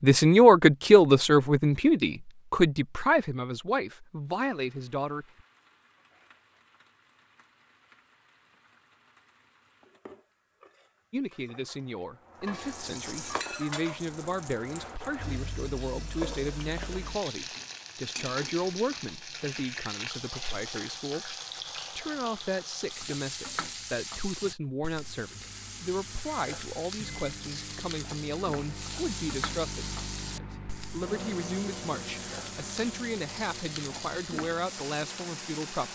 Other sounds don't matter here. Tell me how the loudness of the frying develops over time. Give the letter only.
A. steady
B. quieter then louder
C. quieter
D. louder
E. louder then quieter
D.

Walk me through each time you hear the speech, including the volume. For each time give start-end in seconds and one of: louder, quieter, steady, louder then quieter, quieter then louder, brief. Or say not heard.
0.0-5.5 quieter
11.1-35.8 steady.